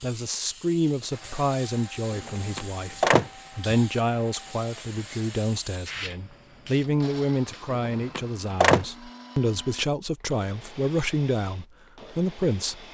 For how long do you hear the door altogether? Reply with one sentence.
The door can be heard for 2 seconds in total.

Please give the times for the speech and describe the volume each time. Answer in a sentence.
The speech can be heard from 0.0 to 12.8 s, at a steady volume.